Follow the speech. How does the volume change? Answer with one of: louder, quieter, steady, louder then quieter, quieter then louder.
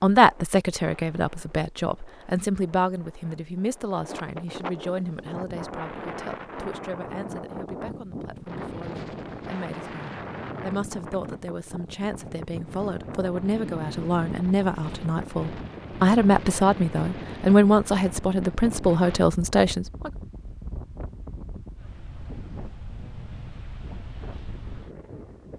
quieter then louder.